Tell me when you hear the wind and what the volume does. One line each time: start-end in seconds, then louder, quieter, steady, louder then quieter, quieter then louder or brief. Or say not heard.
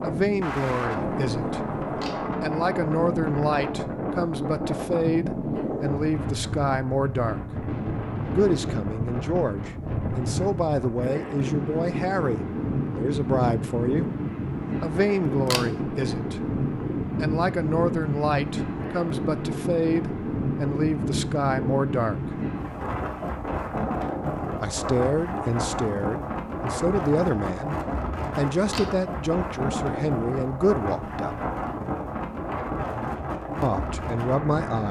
0.0-34.8 steady.